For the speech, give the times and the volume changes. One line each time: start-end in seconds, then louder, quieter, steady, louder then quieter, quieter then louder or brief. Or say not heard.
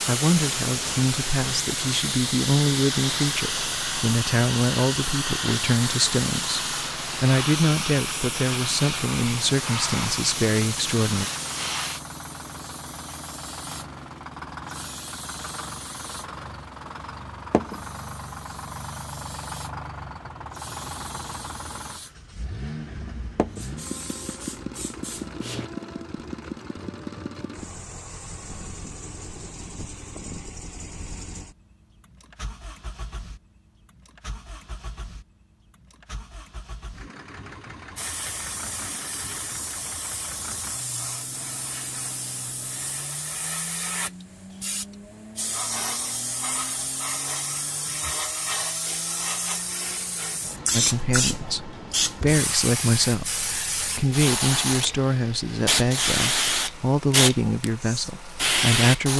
0.1-11.2 steady
50.7-59.1 steady.